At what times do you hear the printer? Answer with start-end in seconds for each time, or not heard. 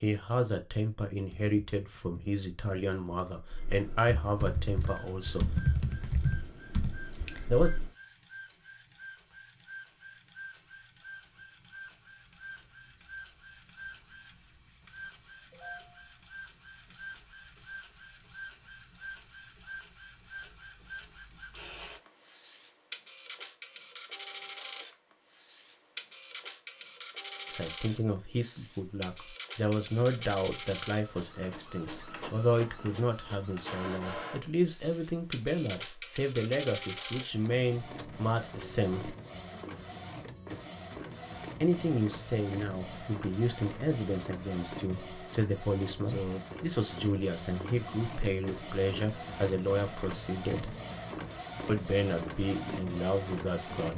4.7-53.9.